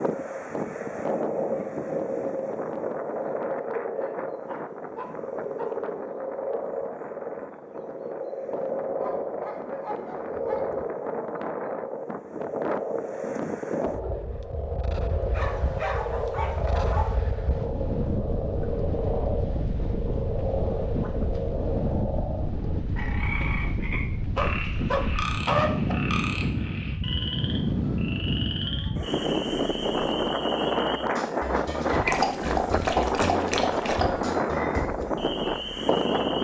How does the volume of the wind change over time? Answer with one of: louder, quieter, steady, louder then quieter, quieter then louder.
louder.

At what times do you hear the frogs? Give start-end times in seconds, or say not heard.
0.0-36.3.